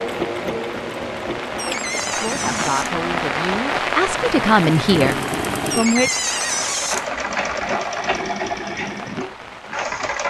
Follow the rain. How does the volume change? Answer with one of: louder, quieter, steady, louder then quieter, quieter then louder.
louder then quieter.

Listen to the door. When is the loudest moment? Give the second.
6 s.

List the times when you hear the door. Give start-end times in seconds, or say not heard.
1.6-3.0, 5.7-7.0.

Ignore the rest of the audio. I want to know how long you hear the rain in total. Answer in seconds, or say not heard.
10 s.